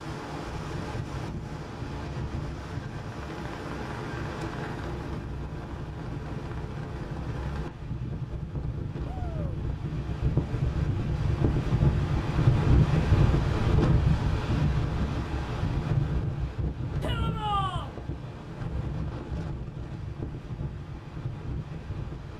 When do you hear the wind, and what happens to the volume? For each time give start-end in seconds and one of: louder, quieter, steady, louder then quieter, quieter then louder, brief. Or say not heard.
0.0-22.3 louder then quieter.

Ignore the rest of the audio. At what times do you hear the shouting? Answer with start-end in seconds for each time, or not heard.
9.1-9.6, 17.0-17.9.